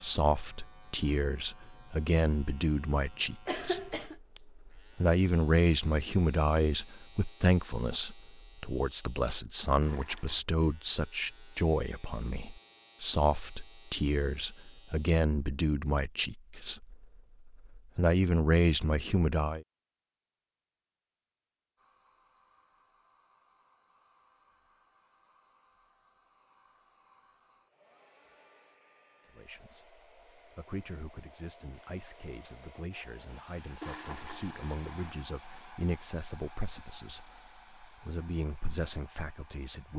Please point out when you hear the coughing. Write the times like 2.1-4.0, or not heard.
3.5-4.2.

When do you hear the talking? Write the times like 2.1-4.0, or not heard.
0.0-19.6, 29.4-39.9.